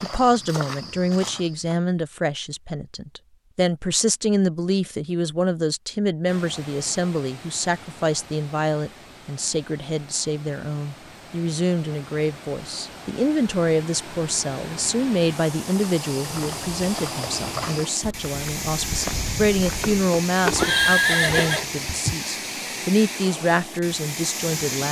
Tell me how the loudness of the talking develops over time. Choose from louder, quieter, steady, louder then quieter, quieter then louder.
steady.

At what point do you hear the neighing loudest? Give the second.
21 s.